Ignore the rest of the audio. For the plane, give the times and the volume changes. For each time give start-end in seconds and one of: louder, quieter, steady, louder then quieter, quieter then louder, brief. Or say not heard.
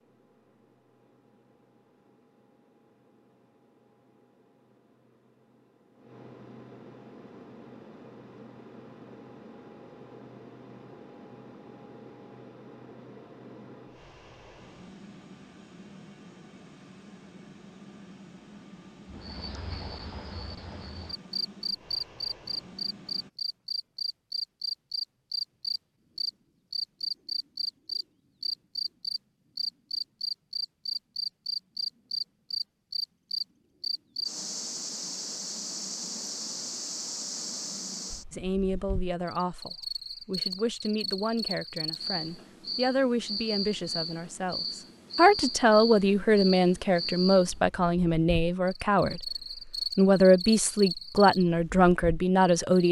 0.0-23.3 louder.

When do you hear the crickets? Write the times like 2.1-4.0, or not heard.
19.1-52.8.